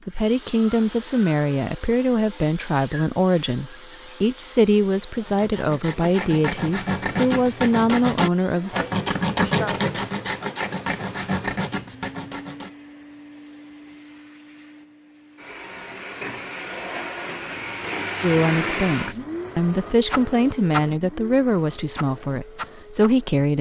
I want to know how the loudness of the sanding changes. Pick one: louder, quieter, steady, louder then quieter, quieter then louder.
louder then quieter.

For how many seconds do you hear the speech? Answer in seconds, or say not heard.
14 s.